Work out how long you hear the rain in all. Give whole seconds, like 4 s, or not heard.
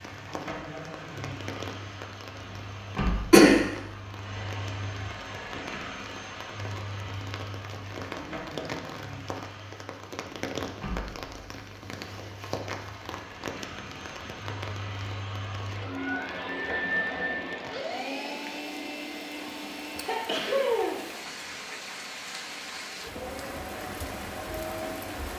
25 s.